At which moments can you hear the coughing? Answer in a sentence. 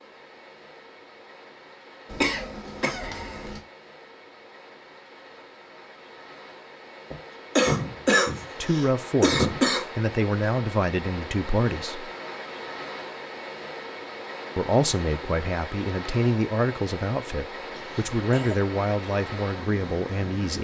The coughing can be heard from 2.1 to 3.6 s, from 7.1 to 9.8 s and from 17.7 to 18.6 s.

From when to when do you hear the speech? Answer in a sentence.
The speech can be heard from 8.6 to 12.1 s and from 14.6 to 20.5 s.